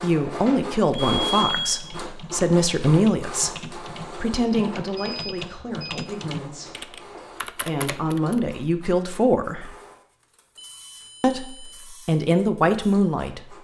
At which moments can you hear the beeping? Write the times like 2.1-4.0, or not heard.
0.9-1.9, 5.0-5.8, 10.6-12.0.